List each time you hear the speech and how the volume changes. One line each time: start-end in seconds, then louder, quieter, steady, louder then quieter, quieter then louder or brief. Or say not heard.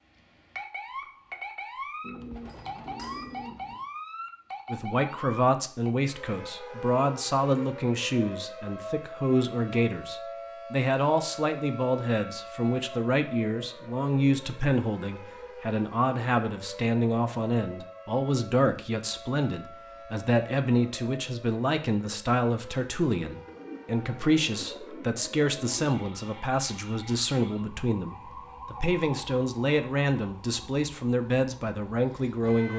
4.7-32.7 steady.